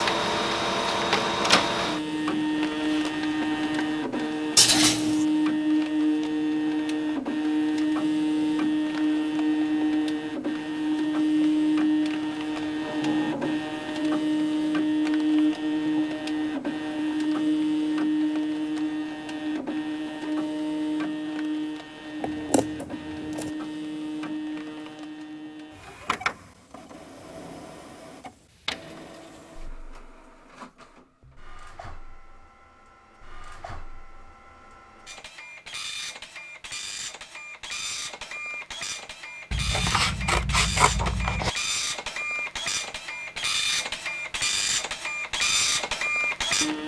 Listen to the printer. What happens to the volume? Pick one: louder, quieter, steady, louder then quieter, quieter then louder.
quieter then louder.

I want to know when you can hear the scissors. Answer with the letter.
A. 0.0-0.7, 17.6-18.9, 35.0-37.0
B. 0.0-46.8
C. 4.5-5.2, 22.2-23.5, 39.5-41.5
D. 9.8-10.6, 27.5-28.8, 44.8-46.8
C.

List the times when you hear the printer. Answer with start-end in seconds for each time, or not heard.
0.0-46.8.